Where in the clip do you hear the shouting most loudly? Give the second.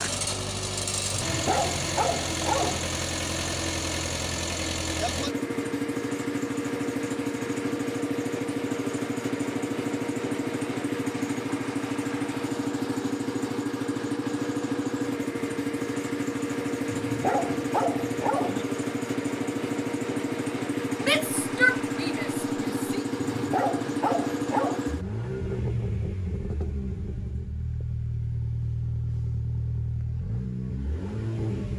22 s.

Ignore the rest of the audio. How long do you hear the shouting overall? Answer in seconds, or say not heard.
2 s.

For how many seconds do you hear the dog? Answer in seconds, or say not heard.
5 s.